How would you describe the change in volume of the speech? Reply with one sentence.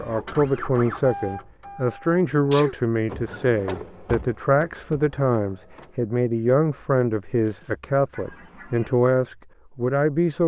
The loudness of the speech stays about the same.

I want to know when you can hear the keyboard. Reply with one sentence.
The keyboard can't be heard in this clip.